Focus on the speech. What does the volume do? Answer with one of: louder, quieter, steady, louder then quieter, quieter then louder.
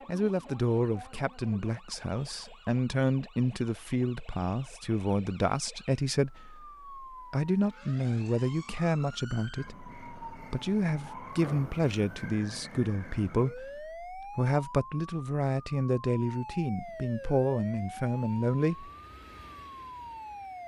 steady.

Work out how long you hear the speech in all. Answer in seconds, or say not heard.
19 s.